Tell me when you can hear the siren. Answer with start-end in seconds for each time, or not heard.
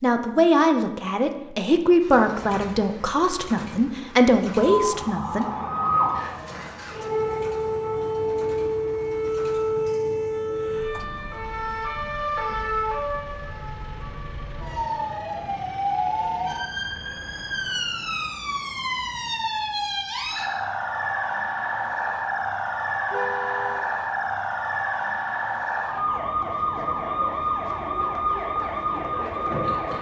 4.7-29.9.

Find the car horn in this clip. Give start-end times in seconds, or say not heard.
23.1-23.9.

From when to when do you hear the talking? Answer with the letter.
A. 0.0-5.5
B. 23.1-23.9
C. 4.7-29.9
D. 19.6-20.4
A.